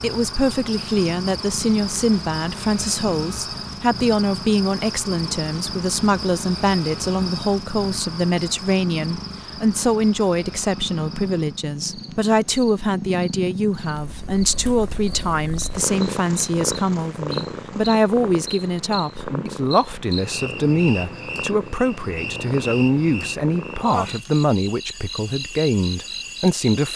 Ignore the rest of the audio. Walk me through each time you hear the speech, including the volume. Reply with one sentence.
The speech can be heard from 0.0 to 26.9 s, at a steady volume.